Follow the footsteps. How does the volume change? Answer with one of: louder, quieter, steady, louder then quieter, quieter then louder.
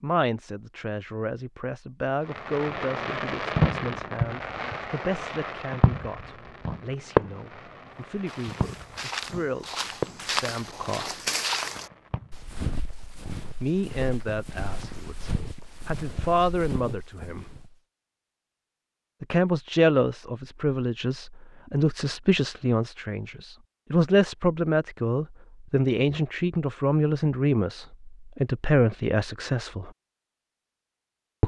louder then quieter.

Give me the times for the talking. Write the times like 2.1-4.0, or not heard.
0.0-11.2, 13.6-17.4, 19.2-29.9.